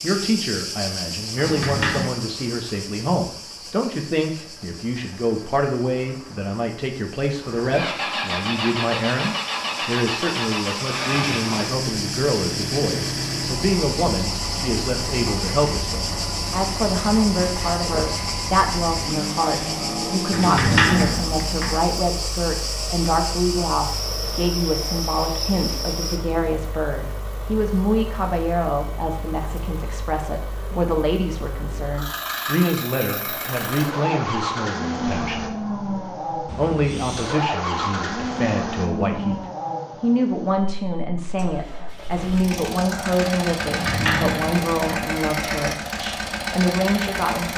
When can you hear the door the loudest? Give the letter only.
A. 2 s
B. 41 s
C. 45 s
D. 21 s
D.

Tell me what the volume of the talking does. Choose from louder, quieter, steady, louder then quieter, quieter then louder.
steady.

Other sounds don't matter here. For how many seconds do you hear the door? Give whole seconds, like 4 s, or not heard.
4 s.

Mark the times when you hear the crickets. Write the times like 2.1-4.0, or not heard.
0.0-26.2.